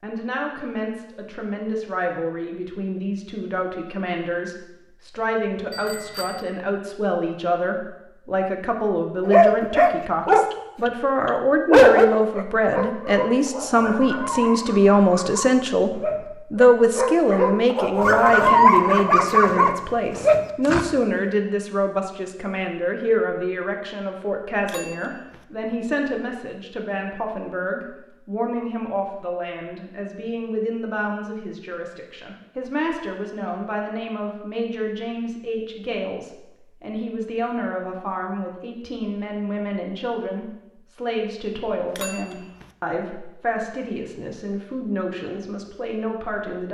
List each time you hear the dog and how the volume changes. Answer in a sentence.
The dog can be heard briefly from 9.2 to 10.9 s; and from 11.7 to 20.9 s, getting louder.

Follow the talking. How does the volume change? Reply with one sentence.
The volume of the talking goes up, then down.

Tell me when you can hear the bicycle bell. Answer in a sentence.
The bicycle bell can be heard from 5.7 to 6.5 s, from 24.6 to 25.4 s and from 41.9 to 42.7 s.